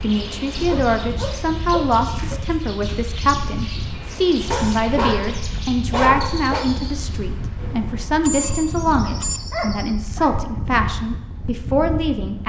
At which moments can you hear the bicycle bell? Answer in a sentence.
The bicycle bell can be heard from 8.2 to 9.4 s.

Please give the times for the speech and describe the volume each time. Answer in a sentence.
You can hear the speech from 0.0 to 12.4 s, at a steady volume.